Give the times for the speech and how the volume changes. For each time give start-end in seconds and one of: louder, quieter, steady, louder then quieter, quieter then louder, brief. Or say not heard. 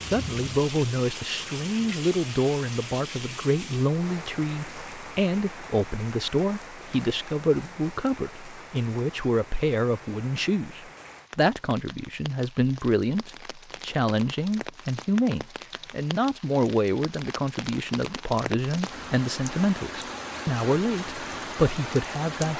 0.1-22.5 steady.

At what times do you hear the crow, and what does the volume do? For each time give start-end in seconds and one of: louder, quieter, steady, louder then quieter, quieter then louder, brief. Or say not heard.
not heard.